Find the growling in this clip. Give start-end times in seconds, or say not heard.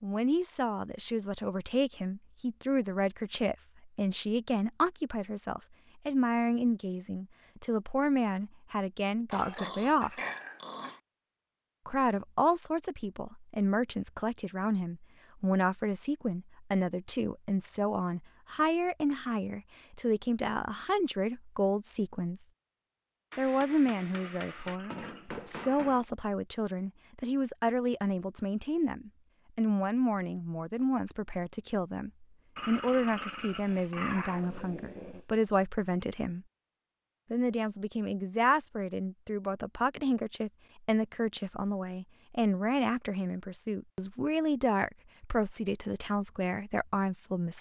9.3-11.0, 24.1-26.0, 32.5-35.2.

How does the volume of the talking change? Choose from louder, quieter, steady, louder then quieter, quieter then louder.
steady.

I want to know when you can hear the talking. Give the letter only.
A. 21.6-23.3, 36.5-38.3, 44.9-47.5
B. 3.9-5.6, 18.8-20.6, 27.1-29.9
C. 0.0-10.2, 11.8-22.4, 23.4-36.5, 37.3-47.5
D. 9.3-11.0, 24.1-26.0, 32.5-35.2
C.